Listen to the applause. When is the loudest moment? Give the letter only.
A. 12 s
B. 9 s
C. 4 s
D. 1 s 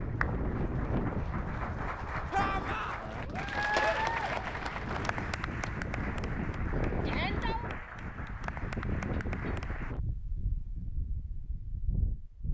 C.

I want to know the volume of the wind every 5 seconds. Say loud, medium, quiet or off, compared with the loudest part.
loud, loud, medium.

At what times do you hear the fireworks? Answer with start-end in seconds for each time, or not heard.
not heard.